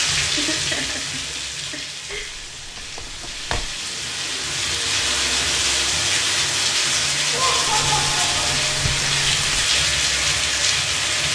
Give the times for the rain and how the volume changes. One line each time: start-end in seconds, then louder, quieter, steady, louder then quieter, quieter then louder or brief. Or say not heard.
0.0-11.3 louder.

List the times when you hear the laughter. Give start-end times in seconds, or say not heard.
0.3-2.2, 7.3-8.6.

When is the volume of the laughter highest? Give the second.
8 s.